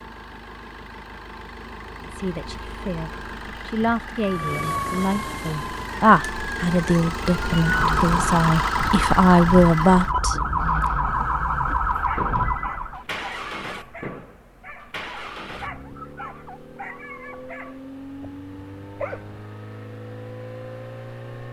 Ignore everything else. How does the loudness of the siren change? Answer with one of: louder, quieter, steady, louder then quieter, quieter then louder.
louder.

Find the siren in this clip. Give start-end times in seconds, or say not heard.
4.2-13.1.